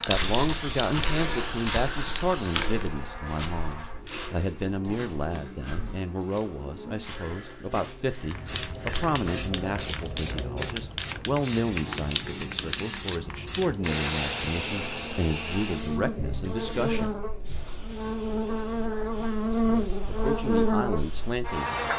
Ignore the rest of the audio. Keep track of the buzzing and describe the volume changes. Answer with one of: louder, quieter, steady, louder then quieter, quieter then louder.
louder.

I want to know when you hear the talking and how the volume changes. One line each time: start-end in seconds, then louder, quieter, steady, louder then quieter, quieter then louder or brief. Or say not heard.
0.1-17.1 steady
19.6-21.9 brief.